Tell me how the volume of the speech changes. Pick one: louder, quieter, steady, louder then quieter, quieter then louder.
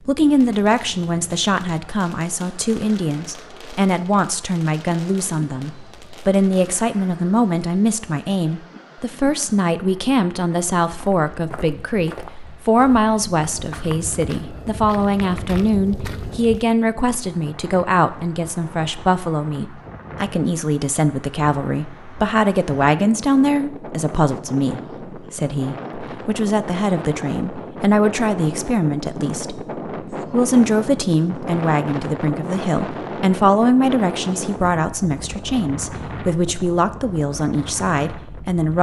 steady.